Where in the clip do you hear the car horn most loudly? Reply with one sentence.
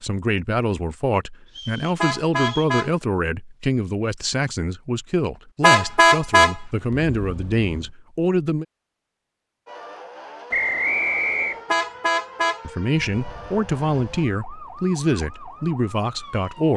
The volume of the car horn peaks at 6 seconds.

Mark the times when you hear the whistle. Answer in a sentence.
You can hear the whistle from 1.4 to 2.8 s and from 10.5 to 11.7 s.